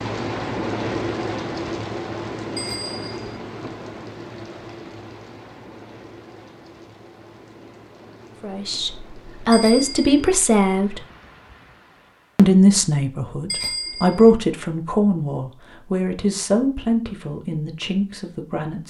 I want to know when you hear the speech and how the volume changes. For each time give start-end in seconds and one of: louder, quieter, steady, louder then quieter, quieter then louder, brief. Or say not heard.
8.4-11.0 brief
12.3-18.8 louder then quieter.